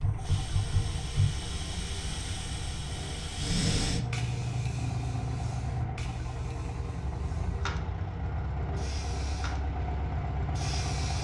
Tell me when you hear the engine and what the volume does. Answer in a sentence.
The engine can be heard from 0.0 to 11.1 s, getting louder.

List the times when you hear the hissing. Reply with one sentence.
You can hear the hissing from 0.0 to 11.1 s.